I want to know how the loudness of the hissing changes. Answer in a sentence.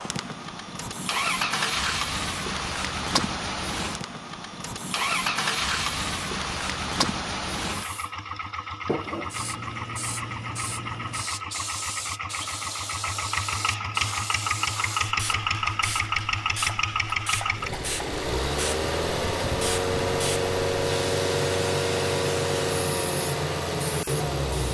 The volume of the hissing stays about the same.